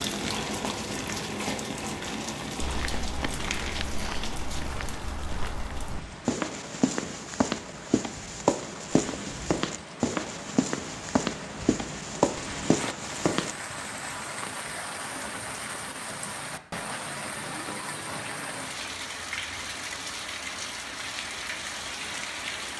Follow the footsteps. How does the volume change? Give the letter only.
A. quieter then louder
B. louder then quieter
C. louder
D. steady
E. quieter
C.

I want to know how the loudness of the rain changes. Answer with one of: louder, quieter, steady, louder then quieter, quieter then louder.
quieter then louder.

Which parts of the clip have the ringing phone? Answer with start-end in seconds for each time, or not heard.
not heard.